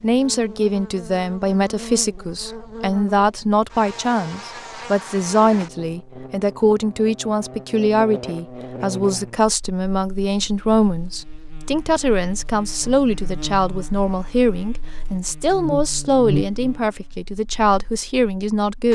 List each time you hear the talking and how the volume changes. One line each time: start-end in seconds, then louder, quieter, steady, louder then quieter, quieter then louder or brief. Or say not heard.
0.0-18.8 steady.